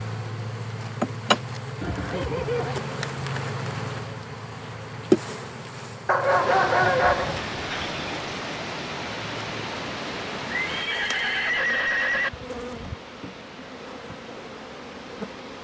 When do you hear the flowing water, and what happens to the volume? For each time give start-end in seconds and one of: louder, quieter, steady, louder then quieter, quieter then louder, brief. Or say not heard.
6.2-15.6 quieter.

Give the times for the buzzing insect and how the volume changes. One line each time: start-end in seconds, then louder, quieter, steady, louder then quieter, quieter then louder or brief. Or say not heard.
0.0-15.6 quieter.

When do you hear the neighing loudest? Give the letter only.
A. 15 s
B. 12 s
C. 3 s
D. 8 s
B.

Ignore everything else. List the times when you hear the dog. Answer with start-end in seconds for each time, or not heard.
6.0-7.4.